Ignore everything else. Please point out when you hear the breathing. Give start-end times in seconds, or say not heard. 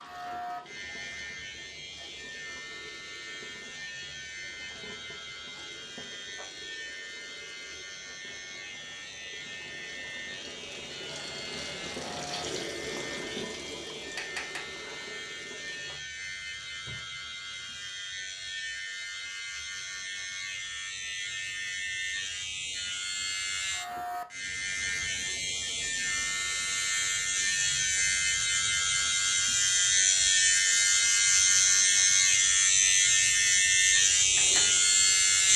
not heard.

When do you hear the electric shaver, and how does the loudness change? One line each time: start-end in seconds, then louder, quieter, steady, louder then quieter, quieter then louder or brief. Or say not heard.
0.0-35.5 louder.